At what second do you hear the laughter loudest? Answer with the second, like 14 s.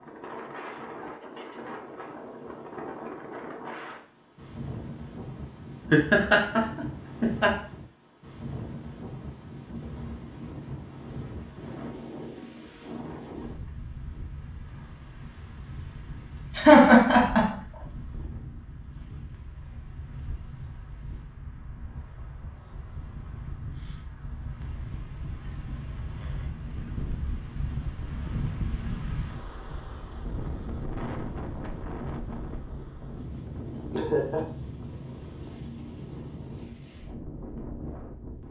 17 s.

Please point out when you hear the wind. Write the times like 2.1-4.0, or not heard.
0.0-38.4.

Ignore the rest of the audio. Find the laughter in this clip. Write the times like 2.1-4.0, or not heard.
5.9-7.5, 16.5-17.5, 33.9-34.4.